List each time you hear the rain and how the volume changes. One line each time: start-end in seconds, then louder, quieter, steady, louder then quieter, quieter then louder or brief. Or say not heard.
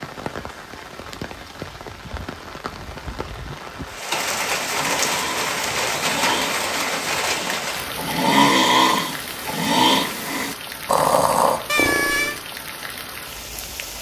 0.0-13.9 louder then quieter.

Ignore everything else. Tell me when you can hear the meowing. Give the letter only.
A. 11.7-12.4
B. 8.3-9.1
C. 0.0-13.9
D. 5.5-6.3
A.